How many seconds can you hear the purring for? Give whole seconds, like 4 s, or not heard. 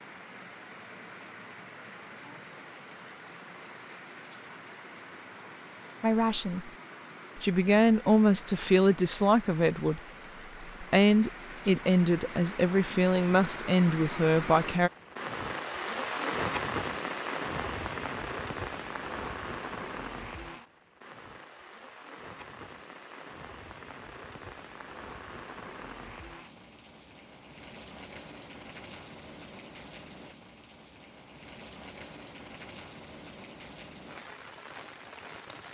not heard.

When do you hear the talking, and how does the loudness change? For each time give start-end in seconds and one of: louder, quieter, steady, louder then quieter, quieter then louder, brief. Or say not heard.
6.0-6.7 brief
7.3-10.0 brief
10.8-14.9 steady.